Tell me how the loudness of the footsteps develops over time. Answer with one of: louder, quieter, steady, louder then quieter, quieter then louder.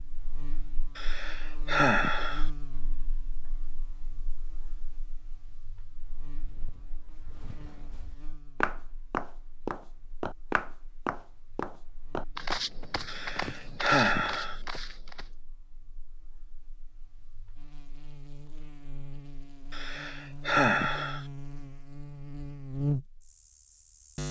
louder then quieter.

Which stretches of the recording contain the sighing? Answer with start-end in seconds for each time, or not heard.
0.9-2.5, 13.1-14.6, 19.7-21.2.